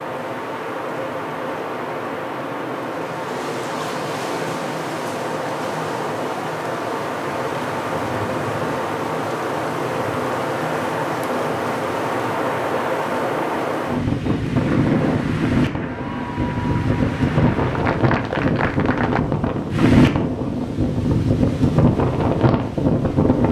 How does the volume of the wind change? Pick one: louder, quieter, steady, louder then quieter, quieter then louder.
louder.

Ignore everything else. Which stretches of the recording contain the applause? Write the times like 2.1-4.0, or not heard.
14.8-19.2.